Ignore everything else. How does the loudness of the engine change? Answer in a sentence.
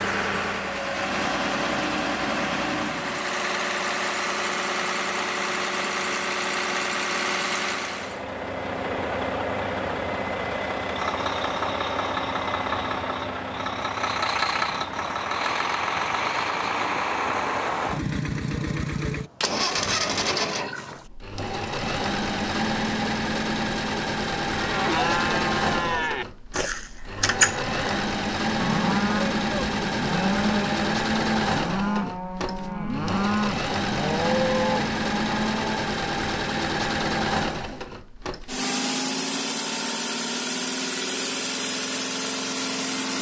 The volume of the engine stays about the same.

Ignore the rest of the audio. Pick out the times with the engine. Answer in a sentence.
The engine can be heard from 0.0 to 43.1 s.